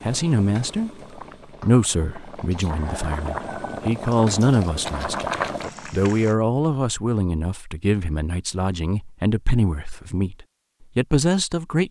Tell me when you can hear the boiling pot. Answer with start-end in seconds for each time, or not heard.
0.0-6.3.